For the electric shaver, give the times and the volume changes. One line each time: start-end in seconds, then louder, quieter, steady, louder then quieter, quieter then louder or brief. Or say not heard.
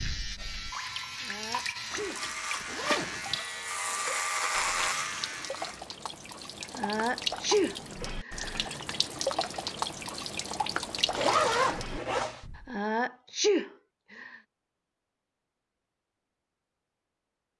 0.0-5.8 louder.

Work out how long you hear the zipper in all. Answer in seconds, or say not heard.
3 s.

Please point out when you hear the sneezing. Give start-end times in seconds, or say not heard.
1.2-2.2, 6.8-8.8, 12.7-14.3.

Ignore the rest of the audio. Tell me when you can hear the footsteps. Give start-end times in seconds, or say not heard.
not heard.